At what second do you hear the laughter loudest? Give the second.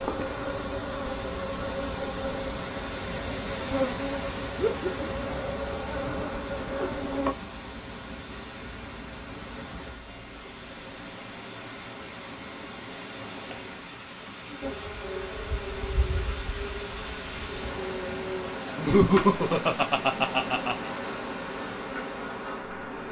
19 s.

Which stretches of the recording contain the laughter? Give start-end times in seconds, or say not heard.
4.5-5.0, 18.8-20.9.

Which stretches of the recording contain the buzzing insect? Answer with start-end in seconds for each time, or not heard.
0.0-7.3, 14.6-23.0.